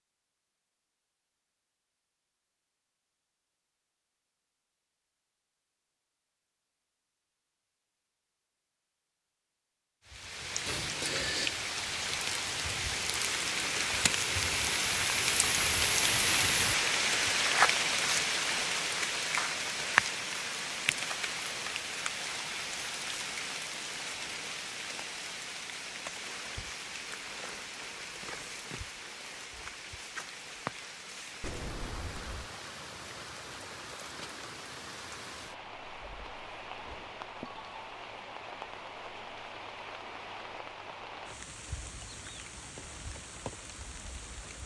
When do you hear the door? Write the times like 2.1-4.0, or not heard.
10.7-11.6, 31.4-32.5.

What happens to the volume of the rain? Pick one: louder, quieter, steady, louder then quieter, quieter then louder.
quieter.